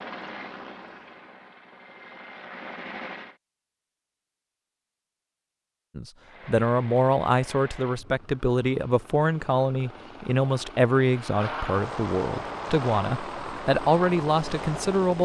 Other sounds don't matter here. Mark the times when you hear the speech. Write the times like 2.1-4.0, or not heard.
6.0-15.2.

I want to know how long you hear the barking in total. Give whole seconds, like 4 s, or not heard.
not heard.